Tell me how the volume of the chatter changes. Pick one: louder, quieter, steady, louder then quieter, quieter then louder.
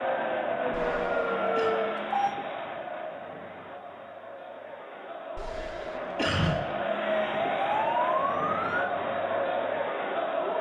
quieter then louder.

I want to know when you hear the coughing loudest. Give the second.
6 s.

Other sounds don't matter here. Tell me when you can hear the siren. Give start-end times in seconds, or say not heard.
0.2-2.4, 6.8-8.9.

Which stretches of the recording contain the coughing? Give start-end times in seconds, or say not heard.
0.7-1.8, 5.3-6.6.